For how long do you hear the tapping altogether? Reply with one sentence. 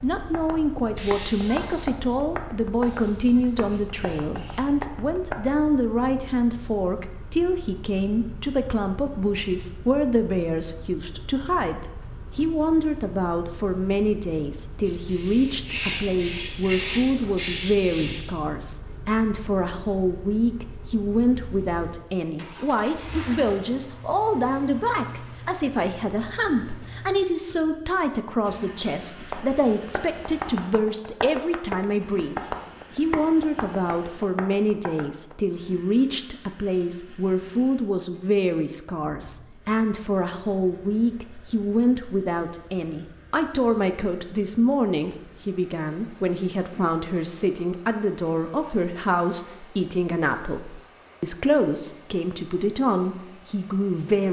You can hear the tapping for 11 seconds altogether.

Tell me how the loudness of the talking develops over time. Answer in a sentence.
The volume of the talking stays about the same.